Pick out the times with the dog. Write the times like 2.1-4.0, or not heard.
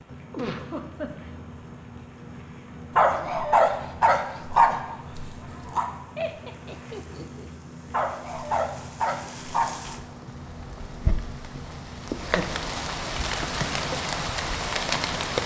3.0-5.8, 7.9-9.8.